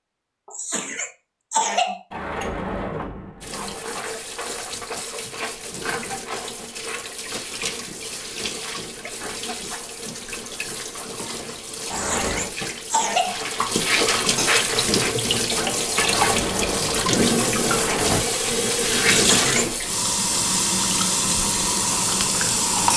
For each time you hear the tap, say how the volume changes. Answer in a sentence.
You can hear the tap from 3.4 to 22.9 s, getting louder.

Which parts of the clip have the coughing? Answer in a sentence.
You can hear the coughing from 0.5 to 2.0 s, from 11.8 to 13.4 s and from 19.1 to 19.7 s.